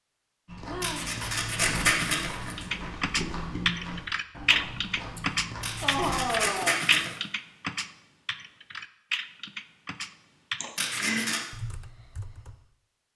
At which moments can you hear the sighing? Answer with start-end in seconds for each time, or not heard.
0.7-1.2, 5.2-6.8, 10.6-11.2.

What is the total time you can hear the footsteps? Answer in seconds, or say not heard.
6 s.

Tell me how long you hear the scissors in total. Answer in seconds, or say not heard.
4 s.